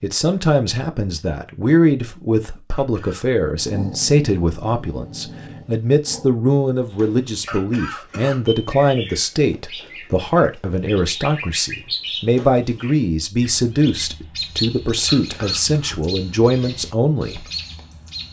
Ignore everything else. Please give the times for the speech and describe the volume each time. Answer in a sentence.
You can hear the speech from 0.0 to 17.4 s, at a steady volume.